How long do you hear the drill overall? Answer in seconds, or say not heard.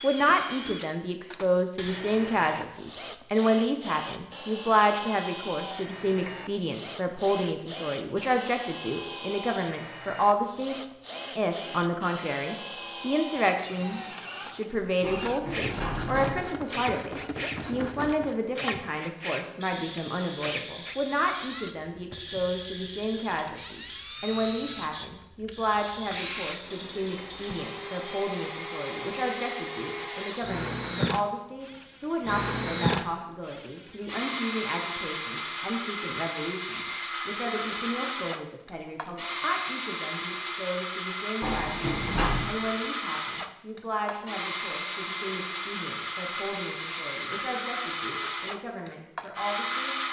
50 s.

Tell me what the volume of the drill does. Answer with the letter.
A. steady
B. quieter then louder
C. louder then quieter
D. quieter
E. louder
E.